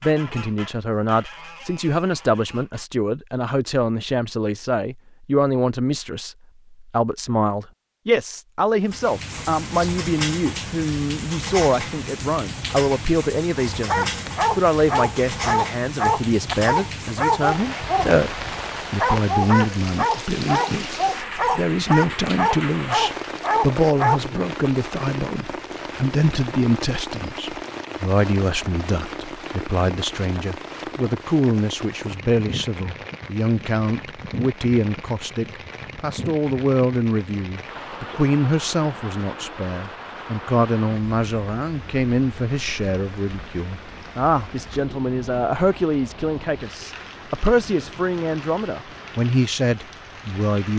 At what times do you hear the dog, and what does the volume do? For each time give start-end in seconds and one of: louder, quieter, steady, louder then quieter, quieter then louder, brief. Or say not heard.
13.7-24.2 steady.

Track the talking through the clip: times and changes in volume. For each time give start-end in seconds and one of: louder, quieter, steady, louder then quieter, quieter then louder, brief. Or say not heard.
0.0-20.9 steady
21.6-50.7 steady.